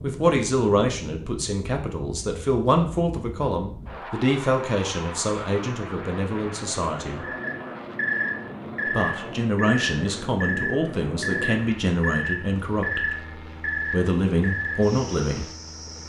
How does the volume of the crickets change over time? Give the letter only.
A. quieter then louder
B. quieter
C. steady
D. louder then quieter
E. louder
B.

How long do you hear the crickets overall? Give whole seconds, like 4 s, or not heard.
9 s.